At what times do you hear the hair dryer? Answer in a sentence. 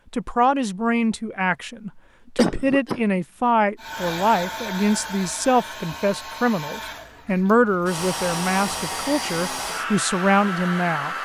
You can hear the hair dryer from 3.8 to 11.1 s.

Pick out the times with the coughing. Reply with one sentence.
You can hear the coughing from 2.4 to 3.2 s.